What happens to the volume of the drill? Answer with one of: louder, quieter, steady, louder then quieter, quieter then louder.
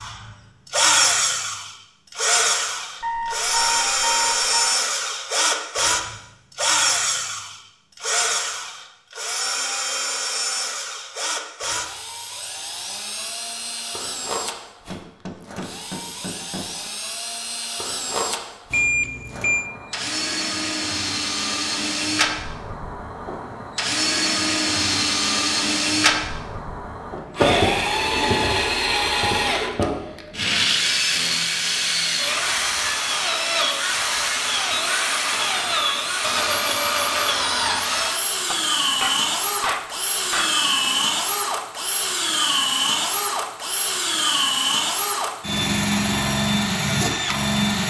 quieter then louder.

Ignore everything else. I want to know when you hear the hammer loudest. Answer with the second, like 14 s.
40 s.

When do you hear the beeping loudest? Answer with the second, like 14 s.
19 s.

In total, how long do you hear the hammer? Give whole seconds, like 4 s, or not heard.
4 s.